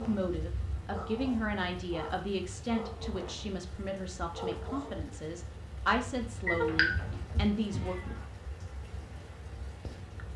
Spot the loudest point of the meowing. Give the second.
7 s.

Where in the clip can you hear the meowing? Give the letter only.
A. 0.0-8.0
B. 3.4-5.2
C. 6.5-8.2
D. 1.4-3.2
C.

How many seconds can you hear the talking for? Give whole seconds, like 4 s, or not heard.
8 s.